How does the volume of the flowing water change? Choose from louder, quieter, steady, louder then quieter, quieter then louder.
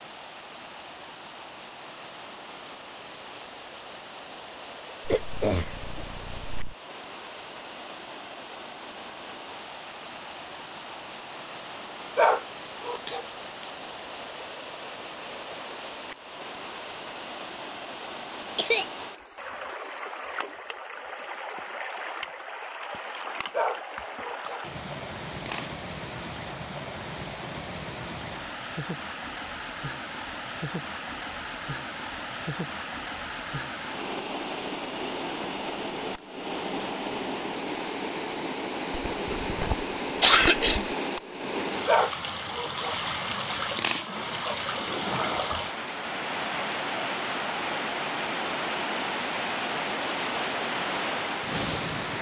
louder.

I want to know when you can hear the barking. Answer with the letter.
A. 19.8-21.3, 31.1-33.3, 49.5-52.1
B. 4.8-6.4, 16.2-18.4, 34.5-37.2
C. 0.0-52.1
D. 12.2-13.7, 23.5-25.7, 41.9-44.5
D.